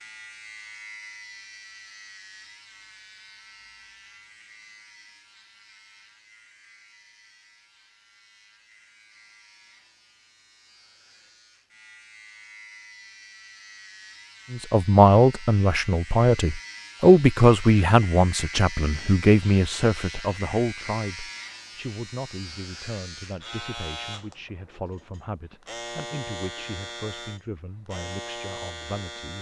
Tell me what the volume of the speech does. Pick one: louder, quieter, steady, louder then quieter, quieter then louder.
quieter.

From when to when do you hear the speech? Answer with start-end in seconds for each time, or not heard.
14.5-29.3.